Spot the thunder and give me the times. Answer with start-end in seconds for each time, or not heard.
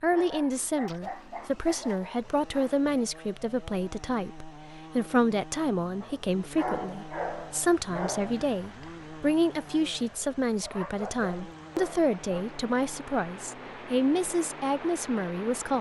not heard.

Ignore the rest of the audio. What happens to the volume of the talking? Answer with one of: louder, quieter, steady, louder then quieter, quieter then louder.
steady.